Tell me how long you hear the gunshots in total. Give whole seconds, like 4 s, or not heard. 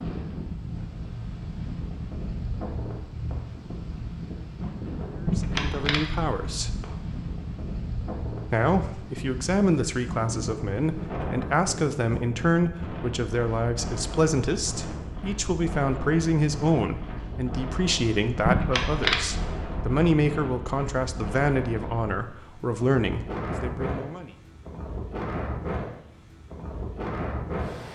3 s.